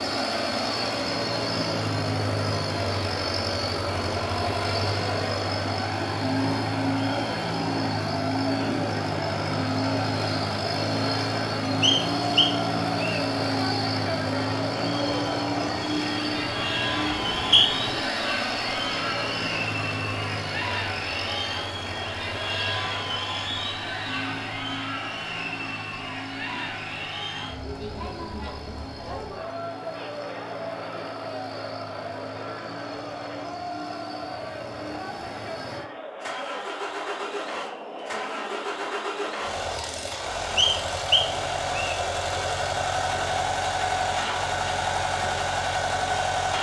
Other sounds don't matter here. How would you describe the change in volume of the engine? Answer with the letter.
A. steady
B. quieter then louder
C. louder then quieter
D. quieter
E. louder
B.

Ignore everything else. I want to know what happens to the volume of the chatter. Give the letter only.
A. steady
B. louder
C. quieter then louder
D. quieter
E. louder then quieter
D.